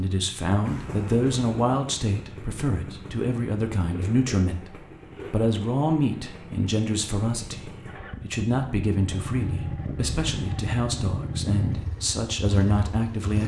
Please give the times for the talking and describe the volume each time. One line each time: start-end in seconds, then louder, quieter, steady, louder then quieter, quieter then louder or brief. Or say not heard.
0.0-13.4 steady.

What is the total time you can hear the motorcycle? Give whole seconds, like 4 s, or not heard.
13 s.